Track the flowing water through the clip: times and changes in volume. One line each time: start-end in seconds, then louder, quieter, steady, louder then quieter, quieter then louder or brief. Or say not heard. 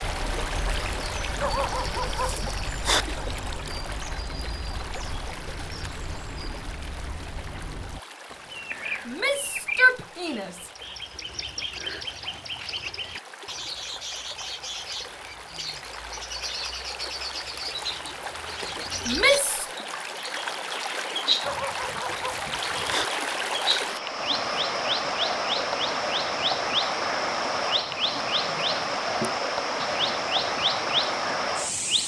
0.0-32.0 quieter then louder.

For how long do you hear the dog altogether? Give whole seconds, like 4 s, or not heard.
3 s.